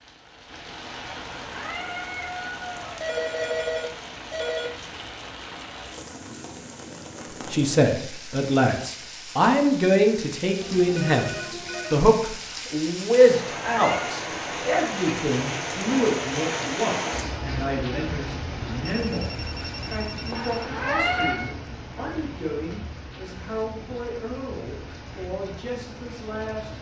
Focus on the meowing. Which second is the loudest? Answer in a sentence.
The loudest moment of the meowing is at 21 seconds.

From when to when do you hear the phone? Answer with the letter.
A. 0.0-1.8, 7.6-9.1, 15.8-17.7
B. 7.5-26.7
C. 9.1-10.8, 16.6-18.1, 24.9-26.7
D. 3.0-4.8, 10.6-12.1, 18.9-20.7
D.